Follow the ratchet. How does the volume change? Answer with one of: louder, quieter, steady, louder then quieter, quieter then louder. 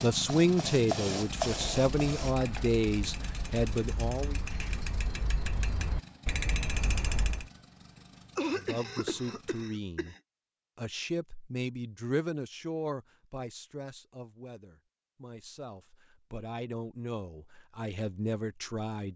louder.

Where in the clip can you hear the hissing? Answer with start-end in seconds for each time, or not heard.
0.0-2.8.